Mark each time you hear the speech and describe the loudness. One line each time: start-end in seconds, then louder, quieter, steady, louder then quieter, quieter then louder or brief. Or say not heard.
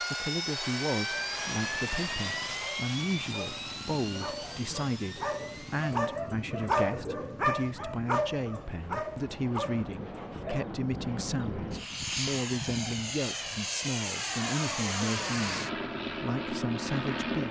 0.1-17.4 steady.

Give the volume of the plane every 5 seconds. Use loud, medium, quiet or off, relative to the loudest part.
loud, quiet, loud, loud.